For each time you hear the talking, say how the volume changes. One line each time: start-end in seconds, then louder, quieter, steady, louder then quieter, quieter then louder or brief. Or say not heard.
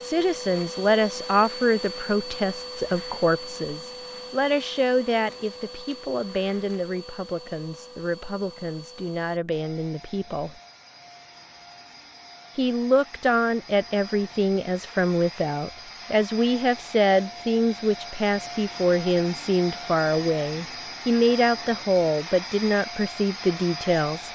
0.0-10.6 quieter
12.6-24.3 steady.